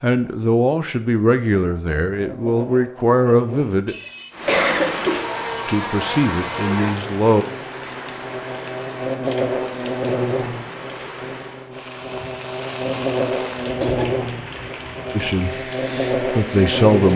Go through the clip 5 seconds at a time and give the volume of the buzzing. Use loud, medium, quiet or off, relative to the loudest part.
medium, loud, loud, loud.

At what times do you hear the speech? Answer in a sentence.
The speech can be heard from 0.0 to 4.0 s, from 5.7 to 7.5 s and from 15.1 to 17.1 s.